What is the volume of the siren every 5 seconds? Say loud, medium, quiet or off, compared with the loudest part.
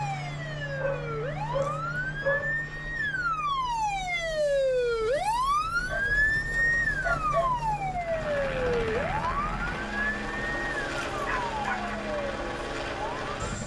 loud, loud, medium.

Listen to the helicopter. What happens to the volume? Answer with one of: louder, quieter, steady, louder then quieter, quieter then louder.
quieter then louder.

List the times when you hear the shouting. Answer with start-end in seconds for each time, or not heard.
not heard.